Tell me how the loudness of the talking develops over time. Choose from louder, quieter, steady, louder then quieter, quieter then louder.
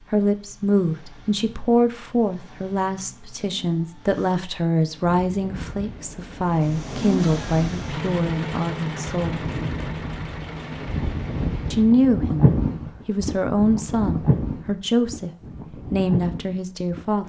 steady.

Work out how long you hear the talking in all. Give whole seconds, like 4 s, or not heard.
15 s.